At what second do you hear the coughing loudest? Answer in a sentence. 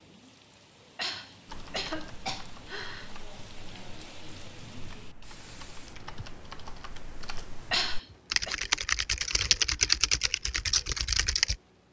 The volume of the coughing peaks at 8 seconds.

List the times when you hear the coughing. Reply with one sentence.
You can hear the coughing from 0.9 to 3.1 s and from 7.7 to 8.6 s.